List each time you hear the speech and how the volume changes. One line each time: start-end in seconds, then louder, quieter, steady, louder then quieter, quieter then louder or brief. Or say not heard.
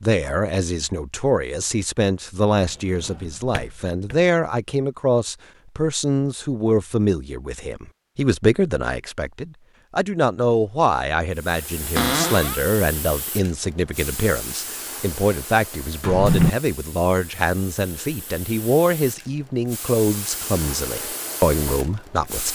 0.0-22.5 steady.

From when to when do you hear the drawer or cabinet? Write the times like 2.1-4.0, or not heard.
2.9-4.2, 11.9-12.6, 16.0-16.5.